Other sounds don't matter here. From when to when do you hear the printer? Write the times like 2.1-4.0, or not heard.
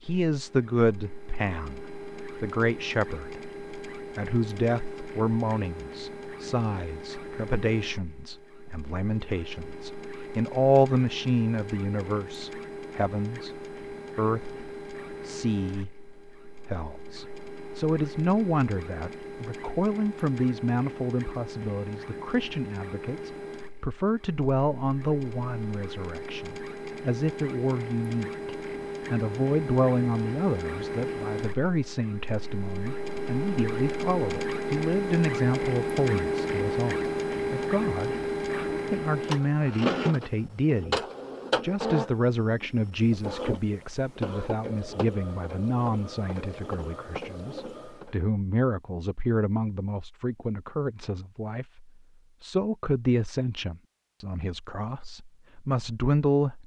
0.0-48.2.